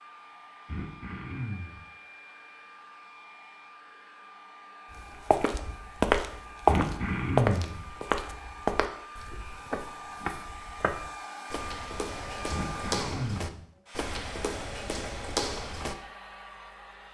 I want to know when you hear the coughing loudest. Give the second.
7 s.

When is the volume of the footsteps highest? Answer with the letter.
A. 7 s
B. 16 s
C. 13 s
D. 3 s
A.